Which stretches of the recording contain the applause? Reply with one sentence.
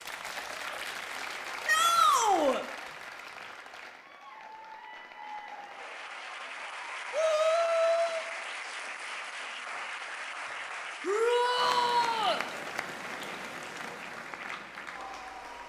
You can hear the applause from 0.0 to 15.6 s.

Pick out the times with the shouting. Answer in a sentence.
You can hear the shouting from 1.6 to 2.6 s, from 7.1 to 8.2 s and from 11.1 to 12.4 s.